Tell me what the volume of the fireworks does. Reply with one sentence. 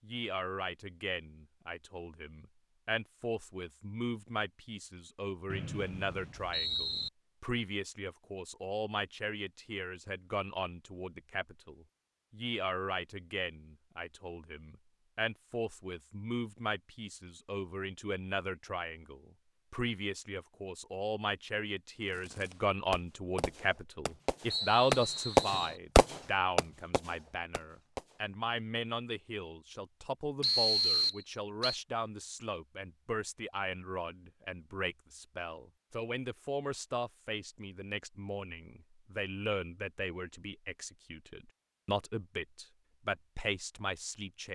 The loudness of the fireworks goes up, then down.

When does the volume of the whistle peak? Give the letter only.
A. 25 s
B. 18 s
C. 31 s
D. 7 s
C.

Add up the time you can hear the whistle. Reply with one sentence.
The whistle can be heard for 4 seconds in total.